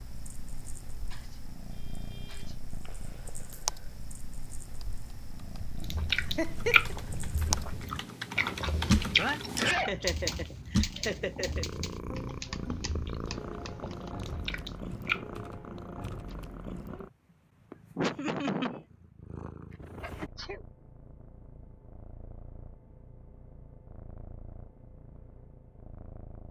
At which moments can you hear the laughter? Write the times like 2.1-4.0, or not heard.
6.2-7.0, 9.8-11.7, 17.9-18.9.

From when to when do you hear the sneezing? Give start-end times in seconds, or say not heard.
1.1-2.5, 9.2-9.9, 20.0-20.6.